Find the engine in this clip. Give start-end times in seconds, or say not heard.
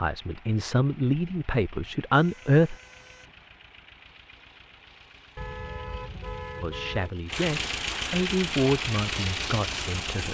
0.0-10.2.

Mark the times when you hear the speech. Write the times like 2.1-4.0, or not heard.
0.0-2.8, 6.6-10.2.